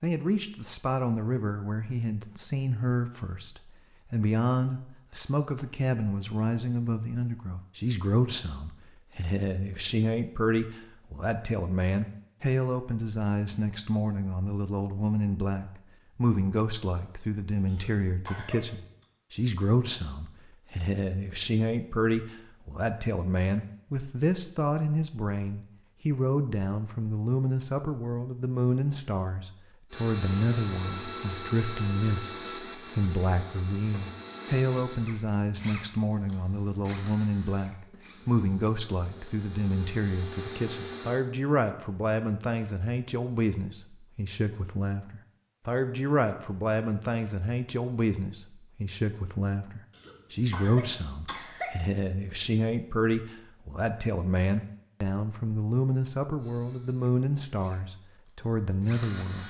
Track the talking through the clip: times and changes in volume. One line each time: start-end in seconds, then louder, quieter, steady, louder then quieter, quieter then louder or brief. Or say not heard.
0.0-59.4 steady.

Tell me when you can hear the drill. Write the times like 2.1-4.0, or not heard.
29.9-41.2, 56.4-59.4.